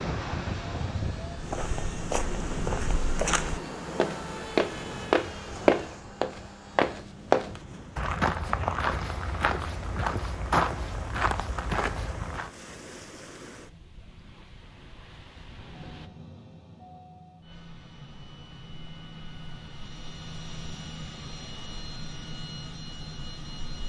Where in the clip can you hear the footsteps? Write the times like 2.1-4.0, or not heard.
1.4-12.5.